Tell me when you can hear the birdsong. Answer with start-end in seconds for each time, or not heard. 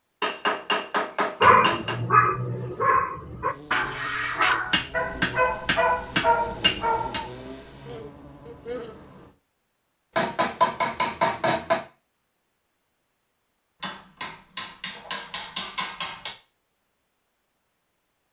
not heard.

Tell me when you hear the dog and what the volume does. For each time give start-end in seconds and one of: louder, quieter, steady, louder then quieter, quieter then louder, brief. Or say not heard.
1.4-7.3 steady.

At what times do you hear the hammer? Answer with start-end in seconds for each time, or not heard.
0.2-1.9, 4.7-7.2, 10.2-11.8, 13.8-16.4.